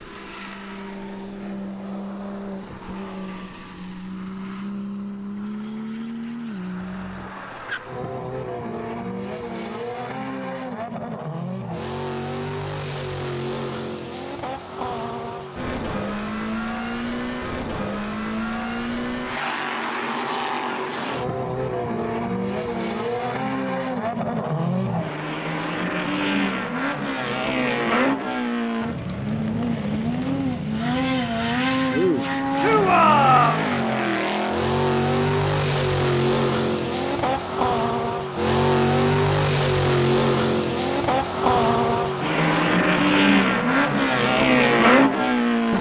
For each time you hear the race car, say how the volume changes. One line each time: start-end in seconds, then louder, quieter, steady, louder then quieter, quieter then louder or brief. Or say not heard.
0.0-45.7 louder.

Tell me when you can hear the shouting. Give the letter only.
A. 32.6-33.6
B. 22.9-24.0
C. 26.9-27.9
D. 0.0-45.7
A.